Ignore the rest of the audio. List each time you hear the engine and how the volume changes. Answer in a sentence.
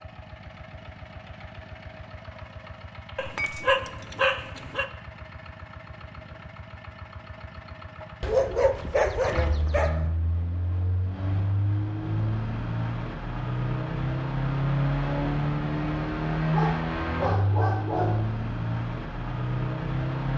You can hear the engine from 0.0 to 20.3 s, getting louder.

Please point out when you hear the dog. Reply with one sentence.
The dog can be heard from 3.1 to 4.8 s, from 8.2 to 10.1 s and from 16.5 to 18.3 s.